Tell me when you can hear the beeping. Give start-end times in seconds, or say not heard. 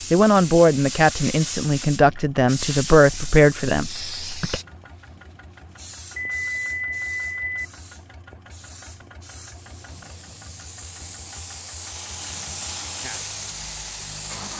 6.2-7.7.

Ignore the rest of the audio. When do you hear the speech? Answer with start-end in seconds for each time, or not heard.
0.1-4.6.